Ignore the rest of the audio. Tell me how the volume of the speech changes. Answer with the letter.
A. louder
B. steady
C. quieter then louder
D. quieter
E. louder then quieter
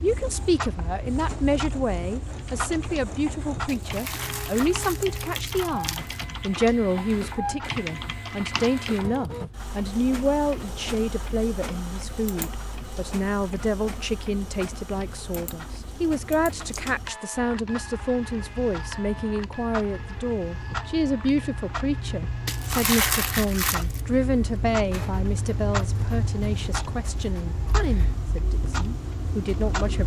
B.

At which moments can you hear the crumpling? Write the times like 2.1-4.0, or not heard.
3.6-6.2, 22.4-24.0.